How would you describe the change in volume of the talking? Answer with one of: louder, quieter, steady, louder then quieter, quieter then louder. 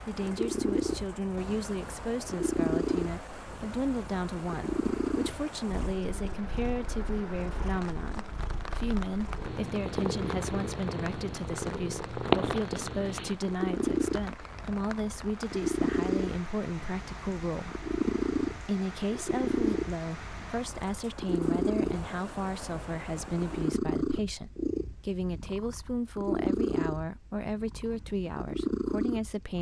steady.